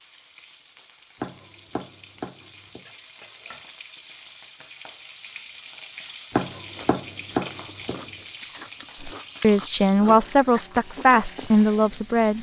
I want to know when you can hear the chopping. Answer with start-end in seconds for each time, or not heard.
1.2-2.9, 6.3-8.1.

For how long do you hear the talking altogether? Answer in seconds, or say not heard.
3 s.